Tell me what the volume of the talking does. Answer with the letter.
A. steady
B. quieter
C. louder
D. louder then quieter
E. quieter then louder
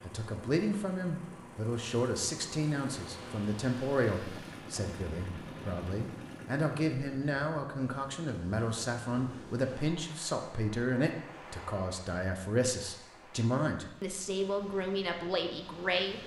A.